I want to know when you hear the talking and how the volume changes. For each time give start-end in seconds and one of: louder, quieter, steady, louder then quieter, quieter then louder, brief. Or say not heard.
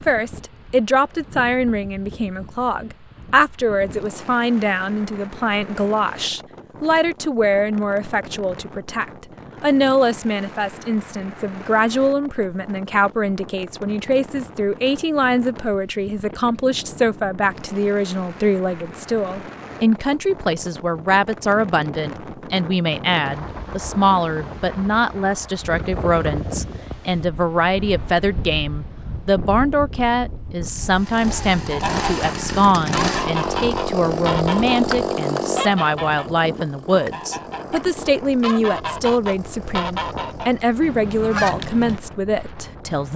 0.0-43.1 steady.